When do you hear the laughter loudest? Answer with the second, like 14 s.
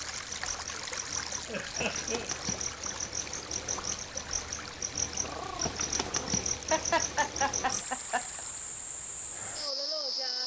7 s.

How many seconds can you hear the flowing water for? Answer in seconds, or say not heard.
9 s.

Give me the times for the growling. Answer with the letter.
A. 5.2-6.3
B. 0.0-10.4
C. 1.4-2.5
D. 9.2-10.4
A.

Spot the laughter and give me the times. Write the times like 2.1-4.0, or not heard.
1.4-2.3, 6.2-8.4.